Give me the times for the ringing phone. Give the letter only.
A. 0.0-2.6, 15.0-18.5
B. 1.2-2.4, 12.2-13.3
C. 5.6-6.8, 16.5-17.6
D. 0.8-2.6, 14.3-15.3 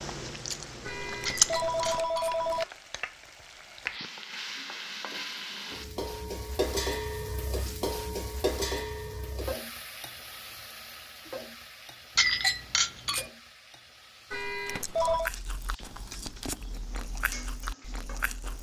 D.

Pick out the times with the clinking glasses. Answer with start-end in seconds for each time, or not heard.
1.2-2.4, 12.2-13.3.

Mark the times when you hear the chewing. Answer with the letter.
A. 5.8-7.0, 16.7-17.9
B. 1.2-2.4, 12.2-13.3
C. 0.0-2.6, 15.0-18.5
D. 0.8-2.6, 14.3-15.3
C.